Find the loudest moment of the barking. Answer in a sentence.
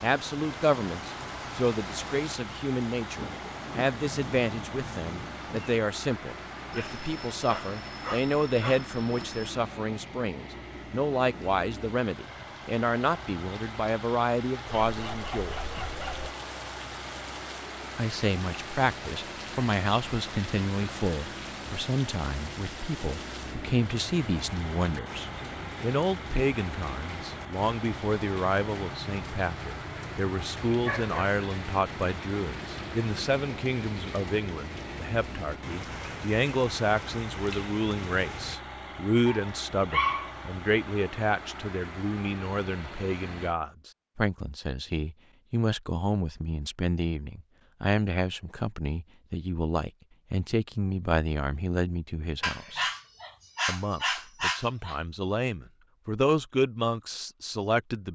The volume of the barking peaks at 40 seconds.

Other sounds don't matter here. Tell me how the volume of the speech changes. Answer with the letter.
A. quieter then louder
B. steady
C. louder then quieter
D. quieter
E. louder
B.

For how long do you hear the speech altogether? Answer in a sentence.
You can hear the speech for 55 seconds altogether.